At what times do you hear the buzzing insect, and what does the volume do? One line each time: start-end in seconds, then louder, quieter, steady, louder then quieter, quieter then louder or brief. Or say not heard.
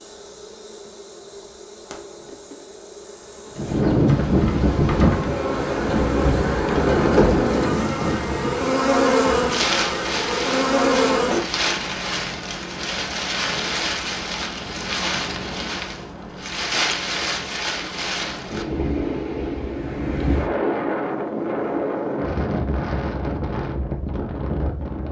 0.0-11.4 louder.